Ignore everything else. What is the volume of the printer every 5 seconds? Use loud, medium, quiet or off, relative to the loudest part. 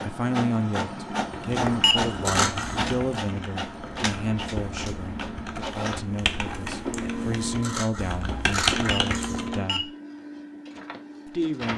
loud, loud, medium.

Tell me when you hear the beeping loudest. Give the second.
2 s.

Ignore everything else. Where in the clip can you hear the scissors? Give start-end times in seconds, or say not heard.
2.2-3.0, 7.6-9.4.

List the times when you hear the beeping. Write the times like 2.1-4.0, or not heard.
1.6-2.3, 8.8-9.8.